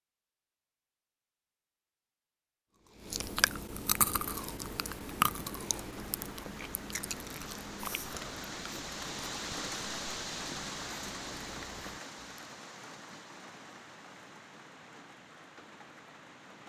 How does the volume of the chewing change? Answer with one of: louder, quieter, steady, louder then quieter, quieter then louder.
quieter.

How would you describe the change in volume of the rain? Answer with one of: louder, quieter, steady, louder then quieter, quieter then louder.
louder then quieter.